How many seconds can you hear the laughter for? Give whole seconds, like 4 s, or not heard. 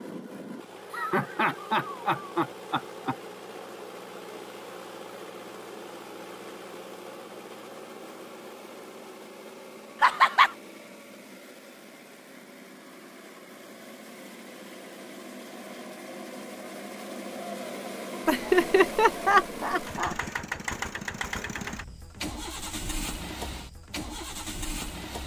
5 s.